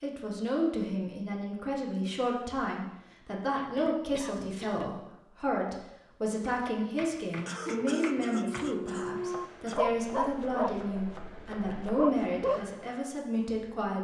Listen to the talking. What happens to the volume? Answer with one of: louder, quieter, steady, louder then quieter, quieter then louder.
steady.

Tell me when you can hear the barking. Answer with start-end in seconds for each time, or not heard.
7.6-12.7.